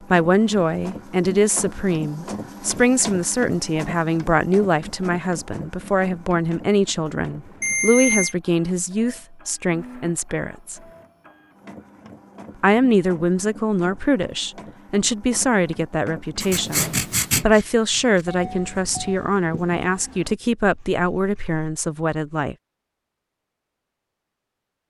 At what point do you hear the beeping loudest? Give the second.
8 s.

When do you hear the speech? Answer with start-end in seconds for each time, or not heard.
0.1-10.8, 12.6-22.6.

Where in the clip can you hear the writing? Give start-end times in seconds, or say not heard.
16.4-21.6.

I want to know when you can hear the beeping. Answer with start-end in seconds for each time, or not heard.
7.6-8.3, 18.2-19.2.